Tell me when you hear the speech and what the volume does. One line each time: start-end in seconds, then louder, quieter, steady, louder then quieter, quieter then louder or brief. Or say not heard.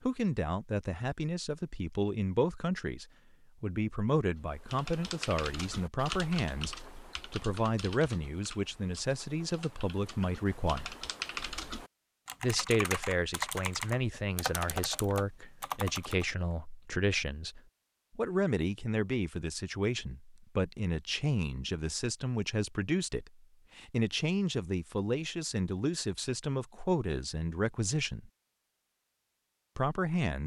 0.0-10.9 steady
12.4-28.3 steady
29.8-30.4 brief.